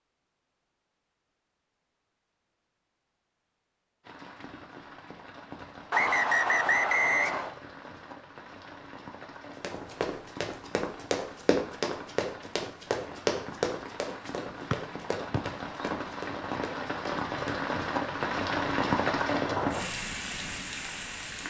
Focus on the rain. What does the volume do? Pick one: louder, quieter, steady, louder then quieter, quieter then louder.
louder.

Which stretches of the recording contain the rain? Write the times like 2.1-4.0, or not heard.
4.0-21.4.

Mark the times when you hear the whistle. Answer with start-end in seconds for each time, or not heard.
5.9-7.5, 14.7-15.8.